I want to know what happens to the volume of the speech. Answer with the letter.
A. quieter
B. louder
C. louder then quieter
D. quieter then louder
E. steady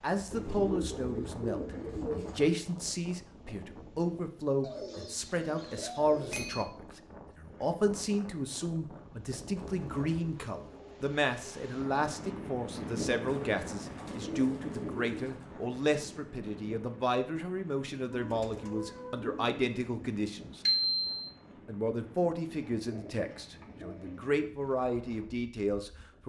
E.